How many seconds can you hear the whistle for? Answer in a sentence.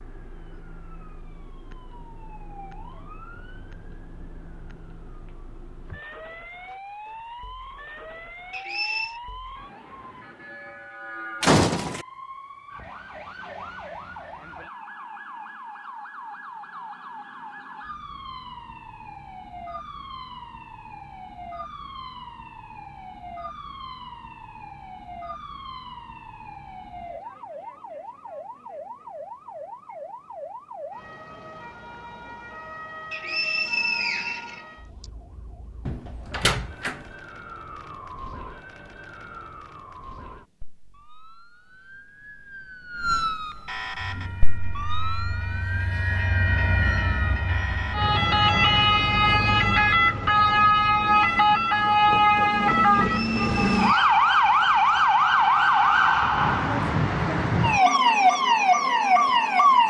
The whistle can be heard for 4 seconds in total.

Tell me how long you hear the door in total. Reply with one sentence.
The door can be heard for 2 seconds in total.